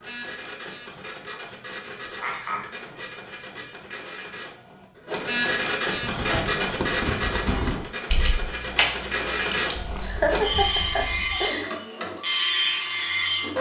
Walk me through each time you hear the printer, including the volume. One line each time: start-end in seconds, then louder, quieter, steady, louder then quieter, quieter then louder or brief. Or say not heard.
0.0-13.5 louder.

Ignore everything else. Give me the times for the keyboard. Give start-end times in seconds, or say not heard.
6.0-11.5.